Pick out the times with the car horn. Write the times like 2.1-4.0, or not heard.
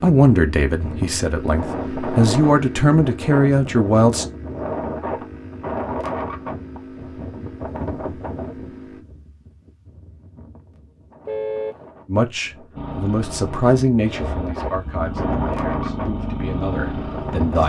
11.2-11.8.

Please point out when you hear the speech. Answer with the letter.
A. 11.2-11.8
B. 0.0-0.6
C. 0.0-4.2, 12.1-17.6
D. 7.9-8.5
C.